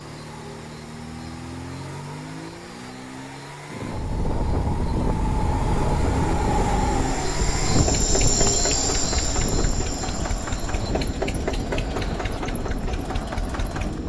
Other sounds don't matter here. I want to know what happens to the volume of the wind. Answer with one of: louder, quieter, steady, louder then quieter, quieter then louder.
quieter.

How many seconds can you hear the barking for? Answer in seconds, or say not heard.
not heard.